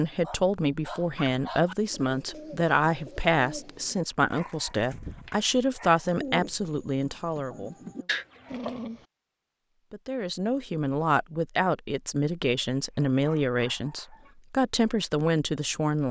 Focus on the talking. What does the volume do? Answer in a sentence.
The volume of the talking stays about the same.